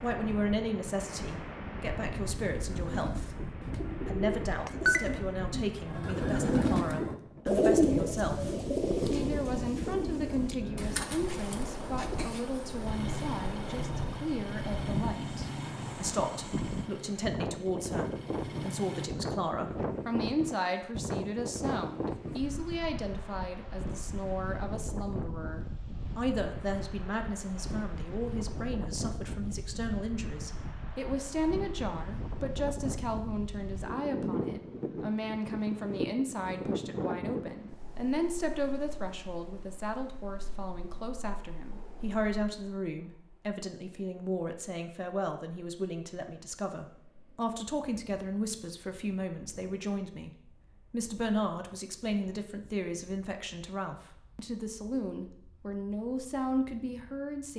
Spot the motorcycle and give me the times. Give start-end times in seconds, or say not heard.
12.8-19.1.